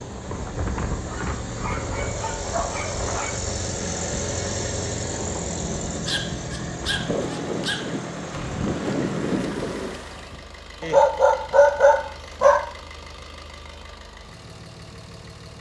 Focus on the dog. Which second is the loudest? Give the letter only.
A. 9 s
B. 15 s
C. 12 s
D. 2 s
C.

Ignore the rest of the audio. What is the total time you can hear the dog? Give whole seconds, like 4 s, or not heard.
6 s.